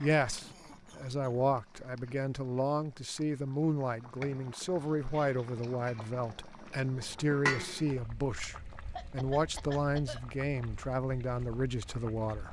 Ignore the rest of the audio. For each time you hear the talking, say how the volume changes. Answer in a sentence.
You can hear the talking from 0.0 to 12.4 s, at a steady volume.